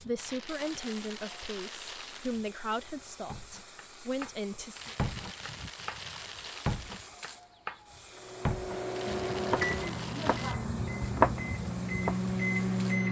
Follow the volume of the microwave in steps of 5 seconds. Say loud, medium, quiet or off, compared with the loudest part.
off, loud, loud.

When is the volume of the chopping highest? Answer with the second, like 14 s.
11 s.